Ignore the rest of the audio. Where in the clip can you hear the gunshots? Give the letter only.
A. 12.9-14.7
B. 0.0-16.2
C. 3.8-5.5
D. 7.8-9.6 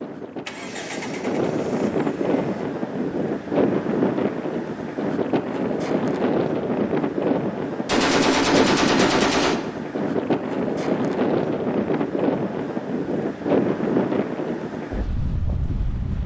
D.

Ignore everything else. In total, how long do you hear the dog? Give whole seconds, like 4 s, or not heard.
not heard.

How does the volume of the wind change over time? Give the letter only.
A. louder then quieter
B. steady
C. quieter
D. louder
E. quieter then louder
B.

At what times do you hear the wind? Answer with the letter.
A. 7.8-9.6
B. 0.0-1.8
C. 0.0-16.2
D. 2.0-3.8
C.